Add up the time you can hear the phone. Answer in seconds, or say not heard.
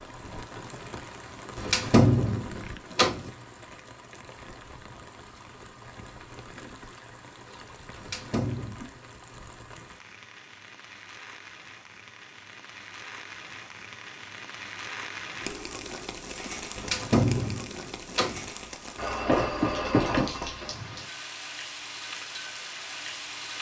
2 s.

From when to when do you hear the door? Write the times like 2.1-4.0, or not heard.
1.6-3.3, 8.0-8.8, 16.8-18.4.